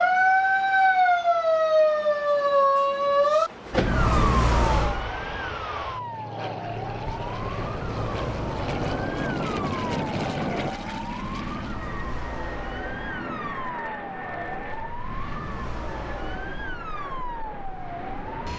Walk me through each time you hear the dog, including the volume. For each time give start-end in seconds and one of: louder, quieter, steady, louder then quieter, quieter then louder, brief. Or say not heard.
not heard.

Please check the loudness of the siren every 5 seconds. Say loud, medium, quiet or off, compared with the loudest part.
loud, quiet, quiet, quiet.